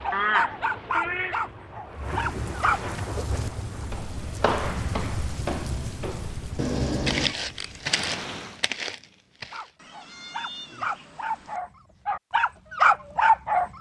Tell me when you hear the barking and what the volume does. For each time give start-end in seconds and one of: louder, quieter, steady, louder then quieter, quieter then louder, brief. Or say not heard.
0.0-2.8 brief
9.5-13.7 louder.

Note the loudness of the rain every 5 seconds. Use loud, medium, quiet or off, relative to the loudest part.
loud, loud, off.